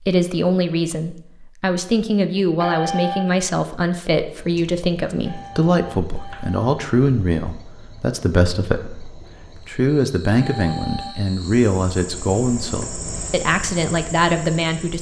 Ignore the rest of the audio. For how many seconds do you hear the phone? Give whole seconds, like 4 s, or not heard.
3 s.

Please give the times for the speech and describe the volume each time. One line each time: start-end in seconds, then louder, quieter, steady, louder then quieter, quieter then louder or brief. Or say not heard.
0.1-14.9 steady.